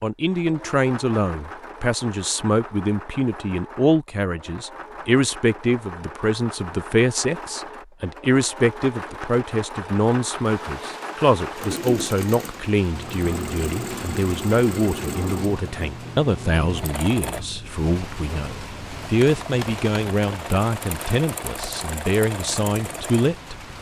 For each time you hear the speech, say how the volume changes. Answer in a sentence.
You can hear the speech from 0.0 to 23.6 s, at a steady volume.